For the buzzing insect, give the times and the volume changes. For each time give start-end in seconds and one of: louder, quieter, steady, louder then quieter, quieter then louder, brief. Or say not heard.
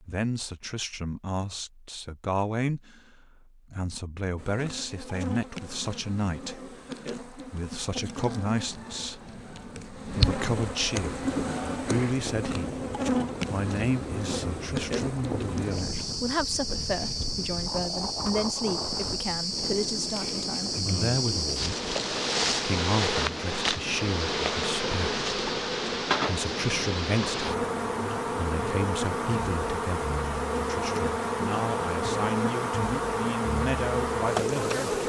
4.3-35.0 louder.